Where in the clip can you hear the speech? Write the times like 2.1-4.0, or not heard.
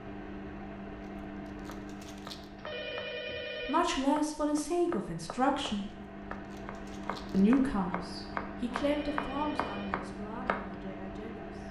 3.6-5.9, 7.3-11.6.